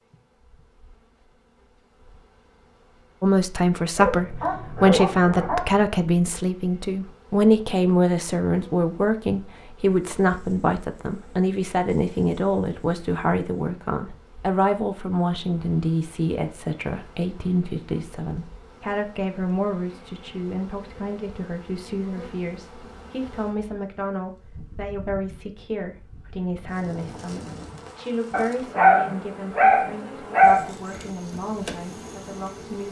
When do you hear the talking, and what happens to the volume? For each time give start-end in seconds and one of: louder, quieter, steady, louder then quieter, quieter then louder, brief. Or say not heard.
3.2-32.8 quieter.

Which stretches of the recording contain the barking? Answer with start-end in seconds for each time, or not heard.
4.0-5.8, 28.3-31.0.